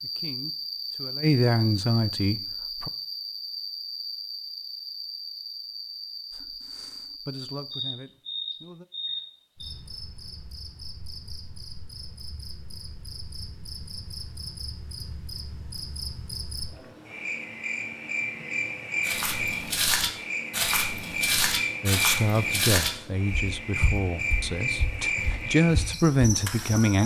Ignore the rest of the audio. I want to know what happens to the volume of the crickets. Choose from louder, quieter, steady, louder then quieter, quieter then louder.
quieter then louder.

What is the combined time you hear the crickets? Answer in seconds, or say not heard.
27 s.